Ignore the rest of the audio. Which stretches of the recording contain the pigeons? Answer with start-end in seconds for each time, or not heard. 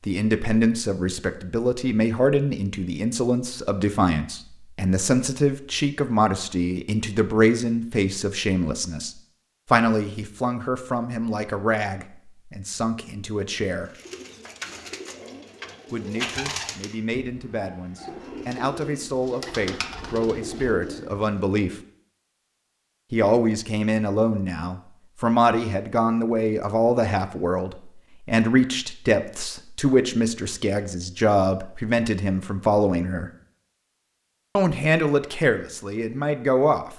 13.8-21.8.